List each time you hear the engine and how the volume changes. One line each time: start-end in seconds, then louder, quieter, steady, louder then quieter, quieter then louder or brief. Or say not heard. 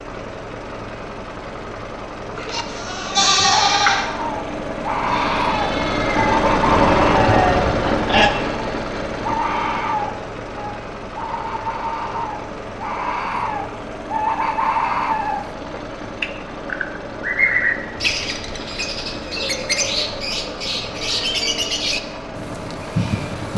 0.0-23.5 louder then quieter.